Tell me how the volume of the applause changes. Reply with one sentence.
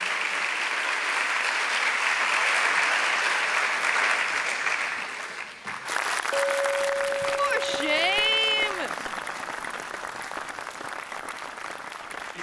The loudness of the applause goes down.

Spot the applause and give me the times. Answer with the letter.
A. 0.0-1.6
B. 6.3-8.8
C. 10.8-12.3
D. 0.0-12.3
D.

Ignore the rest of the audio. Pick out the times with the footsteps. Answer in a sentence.
You can't hear the footsteps here.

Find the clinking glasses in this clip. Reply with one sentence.
The clinking glasses can be heard from 6.3 to 8.8 s.